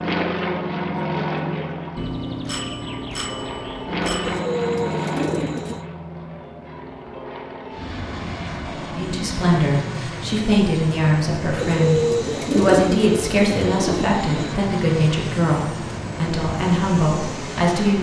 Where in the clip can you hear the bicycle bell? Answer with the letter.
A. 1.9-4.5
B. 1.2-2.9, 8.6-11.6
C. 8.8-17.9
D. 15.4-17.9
A.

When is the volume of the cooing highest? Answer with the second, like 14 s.
12 s.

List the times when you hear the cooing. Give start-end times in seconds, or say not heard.
4.2-5.8, 11.6-14.6.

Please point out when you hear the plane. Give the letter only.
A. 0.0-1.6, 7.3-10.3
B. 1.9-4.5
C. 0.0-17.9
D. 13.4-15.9
C.